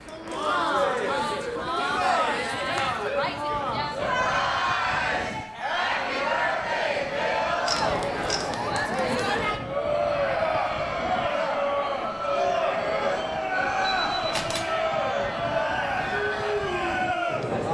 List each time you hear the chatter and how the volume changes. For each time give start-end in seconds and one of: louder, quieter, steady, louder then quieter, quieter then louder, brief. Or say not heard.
0.1-17.6 steady.